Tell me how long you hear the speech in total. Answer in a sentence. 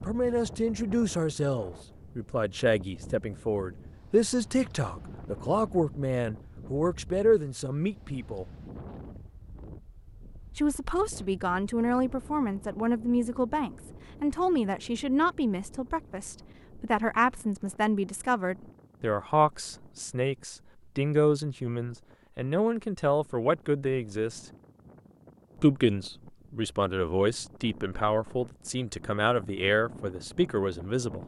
The speech can be heard for 28 seconds in total.